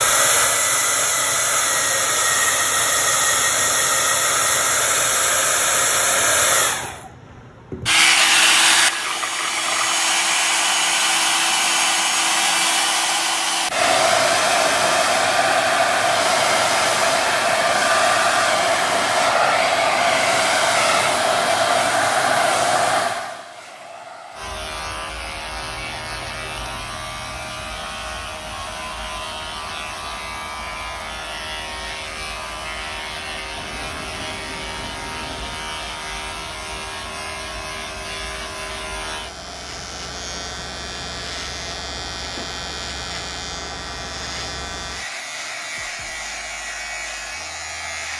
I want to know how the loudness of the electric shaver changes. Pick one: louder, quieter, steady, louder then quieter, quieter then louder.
steady.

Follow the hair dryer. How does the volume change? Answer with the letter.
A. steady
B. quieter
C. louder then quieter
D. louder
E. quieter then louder
B.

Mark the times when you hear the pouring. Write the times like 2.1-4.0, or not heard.
8.2-10.0, 25.6-27.6, 33.5-35.6.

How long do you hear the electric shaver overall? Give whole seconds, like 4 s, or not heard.
24 s.